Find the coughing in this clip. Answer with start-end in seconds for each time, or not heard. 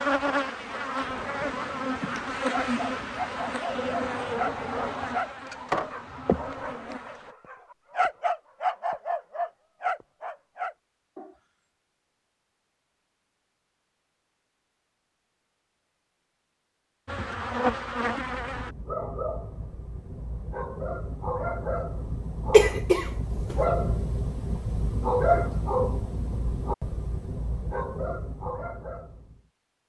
22.5-23.6.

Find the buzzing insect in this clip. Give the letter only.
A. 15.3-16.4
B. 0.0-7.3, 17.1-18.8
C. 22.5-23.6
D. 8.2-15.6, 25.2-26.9
B.